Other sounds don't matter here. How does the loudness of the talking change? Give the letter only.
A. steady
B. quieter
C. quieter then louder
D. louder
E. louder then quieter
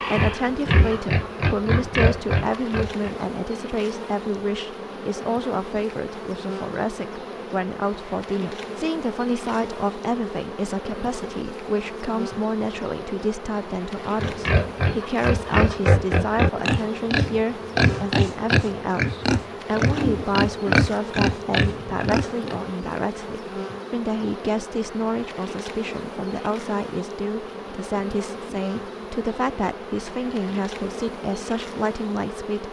A.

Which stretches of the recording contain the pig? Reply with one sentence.
The pig can be heard from 0.0 to 3.1 s and from 14.2 to 22.6 s.